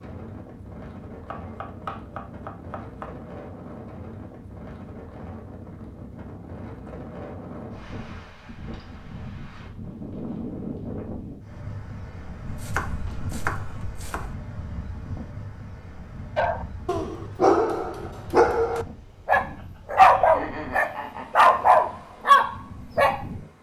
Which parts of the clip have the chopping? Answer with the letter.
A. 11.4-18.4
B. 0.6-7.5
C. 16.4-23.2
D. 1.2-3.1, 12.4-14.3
D.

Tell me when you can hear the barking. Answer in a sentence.
You can hear the barking from 16.4 to 23.2 s.